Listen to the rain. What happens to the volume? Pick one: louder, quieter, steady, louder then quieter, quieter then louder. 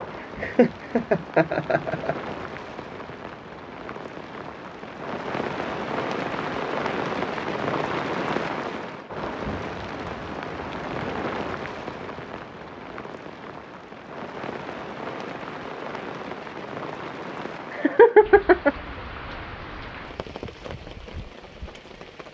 louder then quieter.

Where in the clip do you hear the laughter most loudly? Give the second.
18 s.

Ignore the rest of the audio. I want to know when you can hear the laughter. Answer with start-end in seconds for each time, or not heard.
0.4-2.3, 17.7-18.8.